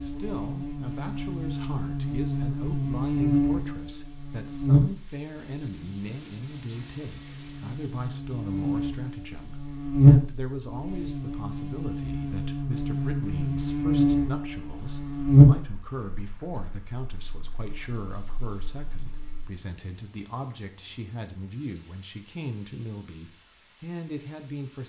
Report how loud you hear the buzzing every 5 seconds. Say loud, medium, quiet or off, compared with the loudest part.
medium, quiet, loud, loud, off.